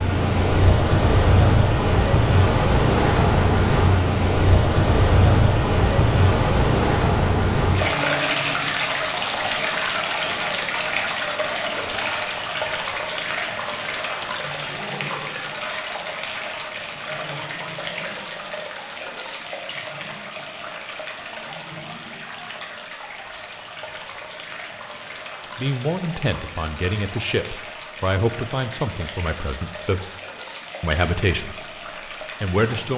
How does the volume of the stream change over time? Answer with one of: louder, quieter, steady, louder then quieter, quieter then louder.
quieter.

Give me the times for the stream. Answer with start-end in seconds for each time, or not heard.
0.0-32.9.